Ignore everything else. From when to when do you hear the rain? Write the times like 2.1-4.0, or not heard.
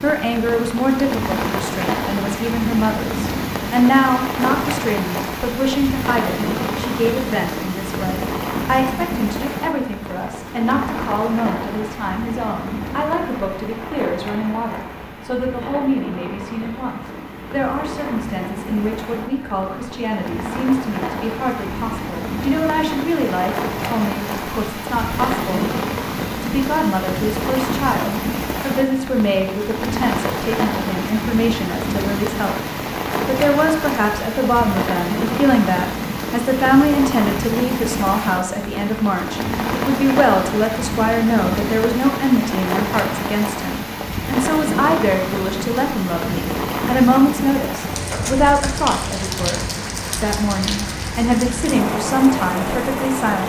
0.0-53.4.